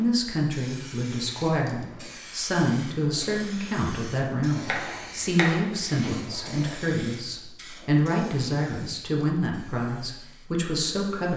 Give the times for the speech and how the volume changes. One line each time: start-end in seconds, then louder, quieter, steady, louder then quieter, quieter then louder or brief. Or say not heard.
0.0-11.3 steady.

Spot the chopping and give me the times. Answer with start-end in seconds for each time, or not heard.
4.7-6.1.